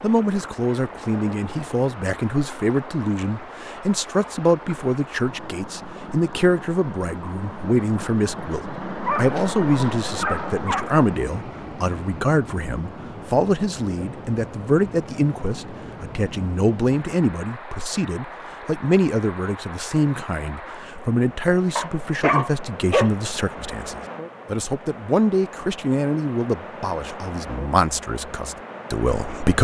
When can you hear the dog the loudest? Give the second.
22 s.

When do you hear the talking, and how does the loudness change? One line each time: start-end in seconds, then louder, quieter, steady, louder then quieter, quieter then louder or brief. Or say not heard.
0.0-29.5 steady.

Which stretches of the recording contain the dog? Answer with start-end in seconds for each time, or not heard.
9.0-11.1, 21.8-23.1.